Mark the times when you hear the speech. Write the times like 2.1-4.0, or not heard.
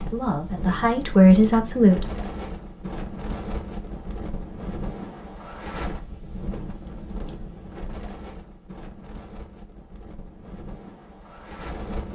0.0-2.0.